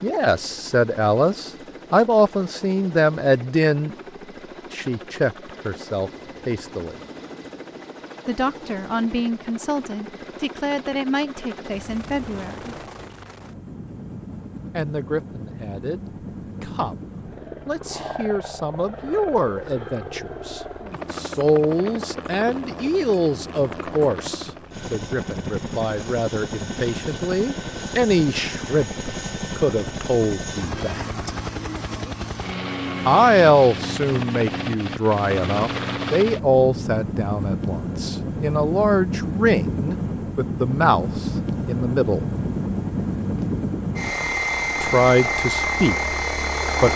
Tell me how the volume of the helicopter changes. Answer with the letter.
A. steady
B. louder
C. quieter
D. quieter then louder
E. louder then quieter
B.